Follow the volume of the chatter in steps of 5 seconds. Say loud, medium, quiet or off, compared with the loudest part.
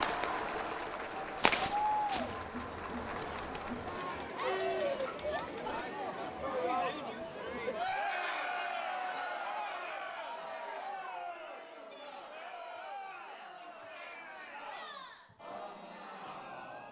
loud, loud, medium, medium.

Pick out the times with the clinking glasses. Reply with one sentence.
The clinking glasses can be heard from 5.0 to 6.0 s.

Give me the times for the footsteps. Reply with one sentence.
You can hear the footsteps from 0.0 to 2.4 s.